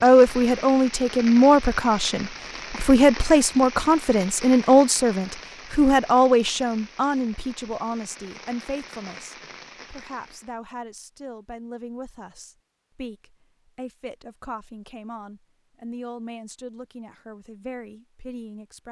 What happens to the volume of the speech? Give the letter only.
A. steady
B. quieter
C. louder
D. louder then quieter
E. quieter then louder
B.